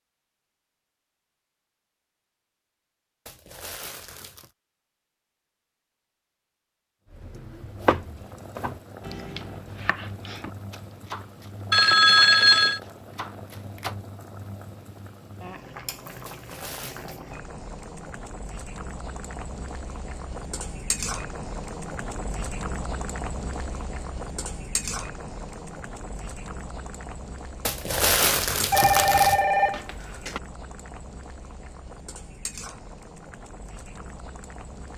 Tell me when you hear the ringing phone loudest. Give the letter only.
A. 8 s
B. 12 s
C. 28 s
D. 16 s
B.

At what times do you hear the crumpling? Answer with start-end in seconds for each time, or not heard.
3.2-4.5, 16.2-17.0, 27.6-29.4.